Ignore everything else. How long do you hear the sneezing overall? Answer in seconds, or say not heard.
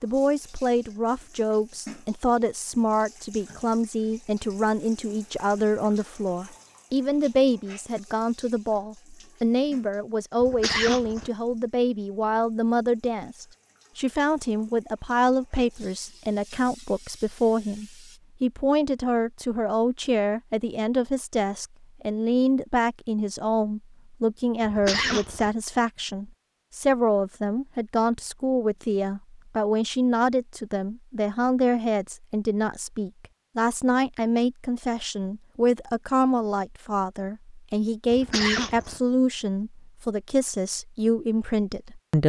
3 s.